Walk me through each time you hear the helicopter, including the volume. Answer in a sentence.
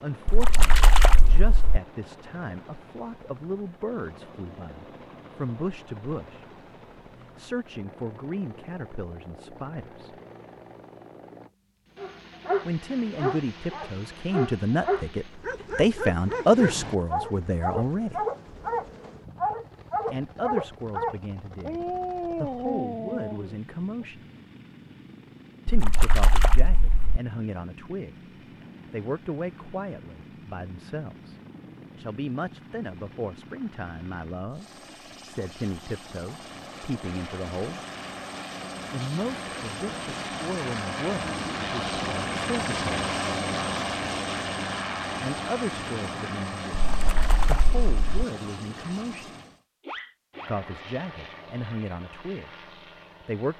The helicopter can be heard from 0.0 to 53.5 s, getting louder.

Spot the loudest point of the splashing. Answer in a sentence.
The loudest moment of the splashing is at 1 second.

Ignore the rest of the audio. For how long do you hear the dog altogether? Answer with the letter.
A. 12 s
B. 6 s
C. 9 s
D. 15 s
A.